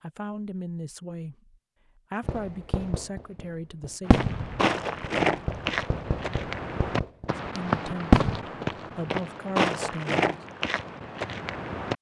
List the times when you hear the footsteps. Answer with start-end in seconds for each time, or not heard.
4.0-11.9.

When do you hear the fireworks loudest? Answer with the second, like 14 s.
8 s.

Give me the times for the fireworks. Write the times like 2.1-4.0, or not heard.
2.2-8.4.